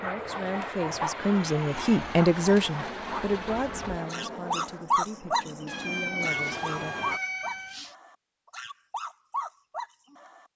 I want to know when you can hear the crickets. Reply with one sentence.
The crickets can't be heard in this clip.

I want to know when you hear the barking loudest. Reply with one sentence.
The volume of the barking peaks at 5 seconds.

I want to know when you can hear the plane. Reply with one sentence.
The plane can be heard from 0.0 to 7.2 s.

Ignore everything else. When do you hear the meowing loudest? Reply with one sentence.
The loudest moment of the meowing is at 6 seconds.